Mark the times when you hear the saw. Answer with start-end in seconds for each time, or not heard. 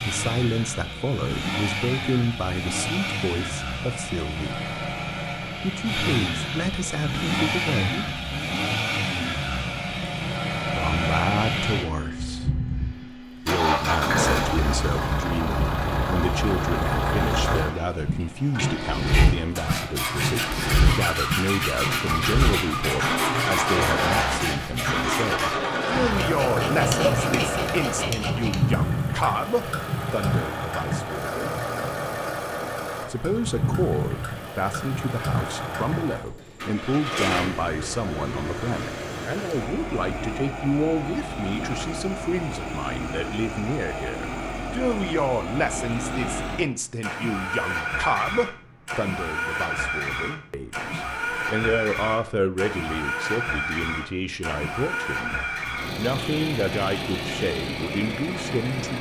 19.1-28.6.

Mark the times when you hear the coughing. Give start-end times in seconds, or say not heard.
26.6-27.4.